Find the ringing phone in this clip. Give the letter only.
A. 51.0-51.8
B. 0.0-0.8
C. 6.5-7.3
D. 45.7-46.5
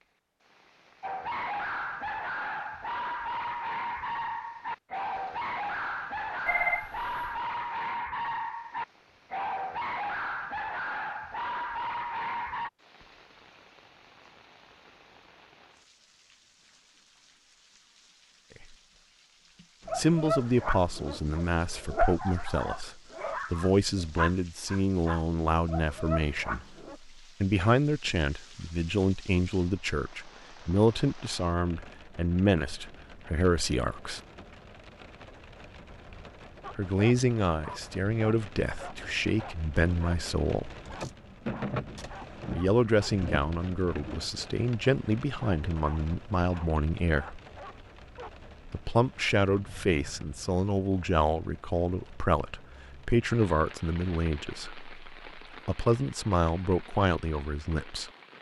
C.